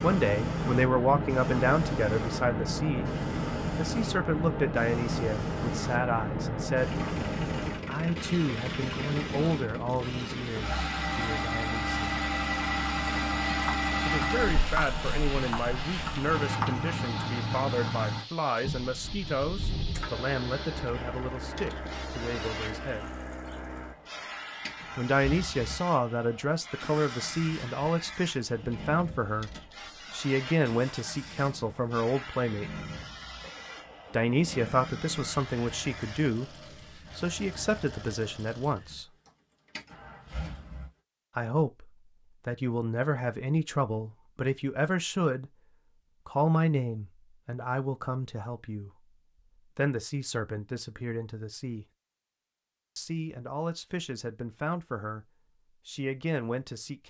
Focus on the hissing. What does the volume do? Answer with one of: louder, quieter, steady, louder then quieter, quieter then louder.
quieter.